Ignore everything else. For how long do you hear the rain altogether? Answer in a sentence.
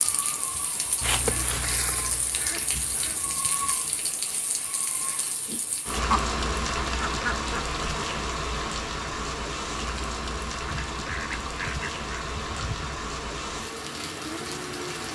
The rain can be heard for 15 seconds in total.